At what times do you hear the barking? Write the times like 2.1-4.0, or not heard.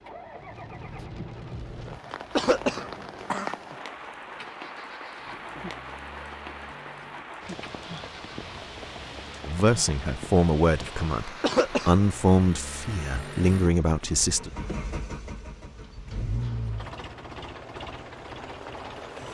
not heard.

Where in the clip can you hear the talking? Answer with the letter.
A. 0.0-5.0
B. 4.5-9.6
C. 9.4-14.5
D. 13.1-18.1
C.